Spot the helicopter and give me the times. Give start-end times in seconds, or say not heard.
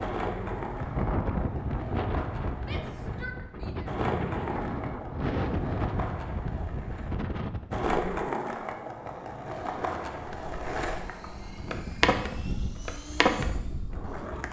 10.8-14.4.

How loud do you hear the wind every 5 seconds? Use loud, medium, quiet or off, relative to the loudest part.
loud, loud, off.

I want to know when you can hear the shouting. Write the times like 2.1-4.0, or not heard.
2.6-4.0.